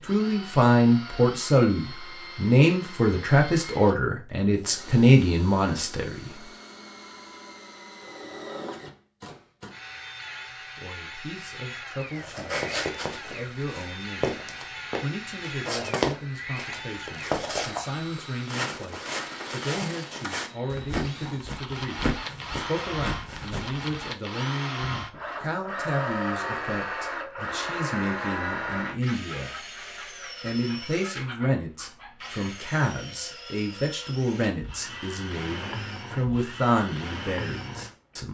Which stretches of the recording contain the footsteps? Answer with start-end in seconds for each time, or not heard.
12.2-24.1.